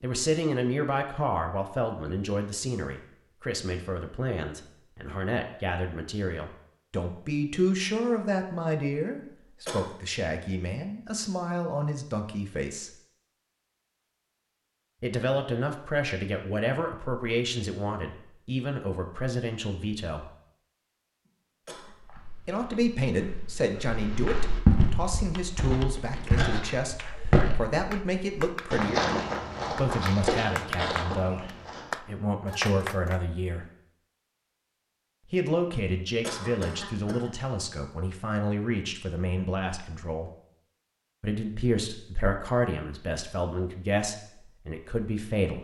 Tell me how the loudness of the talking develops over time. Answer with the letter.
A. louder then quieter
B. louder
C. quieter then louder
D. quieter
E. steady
E.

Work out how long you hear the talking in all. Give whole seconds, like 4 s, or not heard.
39 s.